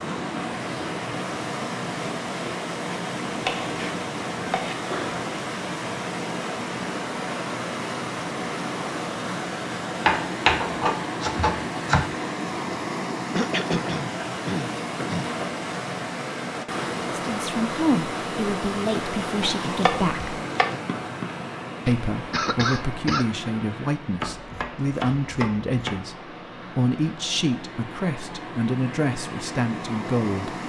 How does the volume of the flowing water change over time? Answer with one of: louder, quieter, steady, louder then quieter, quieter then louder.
quieter.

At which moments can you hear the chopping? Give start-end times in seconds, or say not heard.
3.4-4.8, 10.1-12.1, 19.4-20.8, 24.2-26.0.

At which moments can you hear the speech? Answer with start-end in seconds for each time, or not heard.
17.2-20.4, 21.9-30.6.